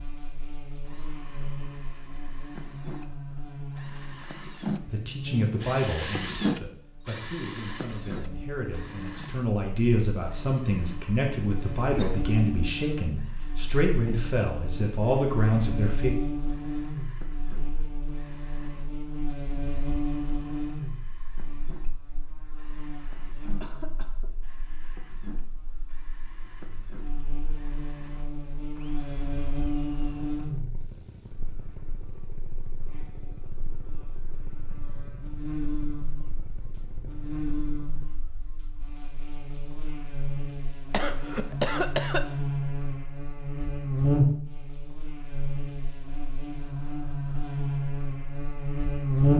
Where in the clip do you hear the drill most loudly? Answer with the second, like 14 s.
6 s.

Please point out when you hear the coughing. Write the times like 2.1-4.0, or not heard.
11.9-12.5, 23.6-24.4, 40.9-42.2.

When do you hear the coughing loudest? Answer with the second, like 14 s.
42 s.